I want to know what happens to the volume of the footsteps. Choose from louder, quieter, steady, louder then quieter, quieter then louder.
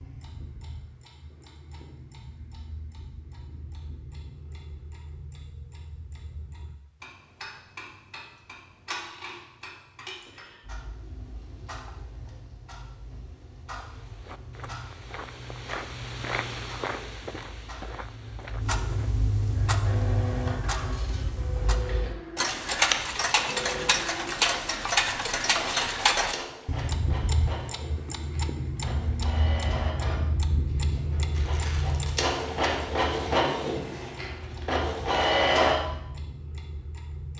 louder then quieter.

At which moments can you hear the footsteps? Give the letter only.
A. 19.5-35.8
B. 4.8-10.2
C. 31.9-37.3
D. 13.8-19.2
D.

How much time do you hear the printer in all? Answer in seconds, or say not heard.
16 s.